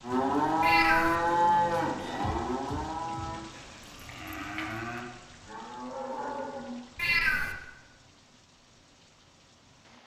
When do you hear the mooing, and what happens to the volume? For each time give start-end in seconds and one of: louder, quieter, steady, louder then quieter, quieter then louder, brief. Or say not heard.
0.0-6.8 quieter.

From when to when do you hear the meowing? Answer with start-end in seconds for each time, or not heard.
0.6-1.1, 7.0-7.5.